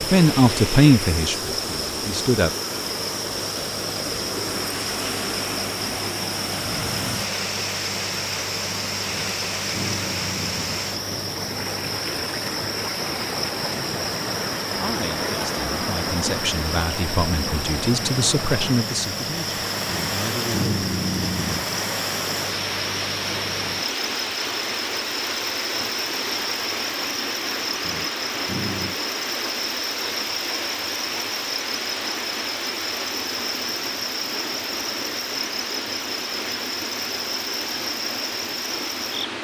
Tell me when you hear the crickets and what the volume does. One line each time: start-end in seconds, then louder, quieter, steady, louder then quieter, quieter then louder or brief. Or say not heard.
0.0-39.3 steady.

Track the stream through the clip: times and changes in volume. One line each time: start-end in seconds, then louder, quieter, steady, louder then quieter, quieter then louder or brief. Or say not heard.
0.0-39.3 steady.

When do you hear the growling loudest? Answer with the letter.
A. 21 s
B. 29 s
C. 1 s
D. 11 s
A.